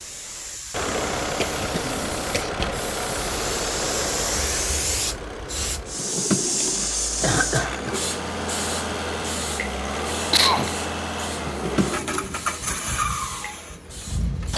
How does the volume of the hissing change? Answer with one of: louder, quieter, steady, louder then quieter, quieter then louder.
louder then quieter.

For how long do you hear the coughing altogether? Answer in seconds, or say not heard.
3 s.